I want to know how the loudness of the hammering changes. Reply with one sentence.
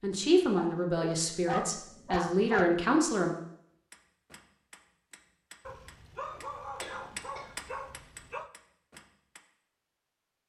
The loudness of the hammering goes up, then down.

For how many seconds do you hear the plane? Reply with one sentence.
The plane can't be heard in this clip.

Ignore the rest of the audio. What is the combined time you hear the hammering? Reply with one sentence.
The hammering can be heard for 6 seconds in total.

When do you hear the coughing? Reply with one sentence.
The coughing can be heard from 6.8 to 7.5 s.